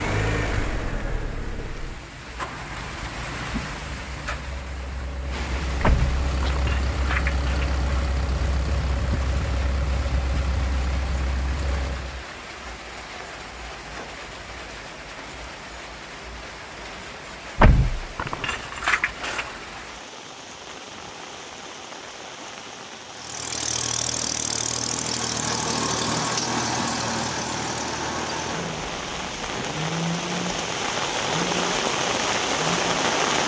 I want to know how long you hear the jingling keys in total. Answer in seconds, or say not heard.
4 s.